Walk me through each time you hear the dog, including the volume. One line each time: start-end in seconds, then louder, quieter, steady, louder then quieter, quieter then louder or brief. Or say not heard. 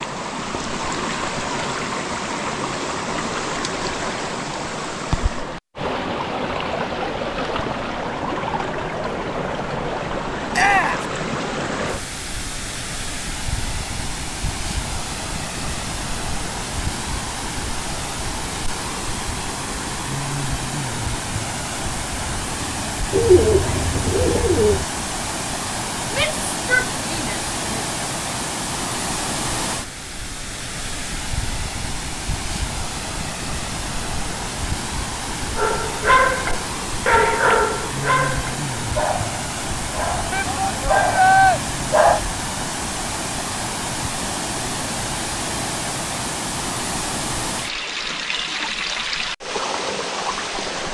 35.5-42.2 quieter then louder.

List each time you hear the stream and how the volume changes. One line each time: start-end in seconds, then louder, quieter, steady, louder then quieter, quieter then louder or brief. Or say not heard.
0.0-50.8 steady.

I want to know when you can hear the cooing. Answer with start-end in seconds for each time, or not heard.
23.1-24.9.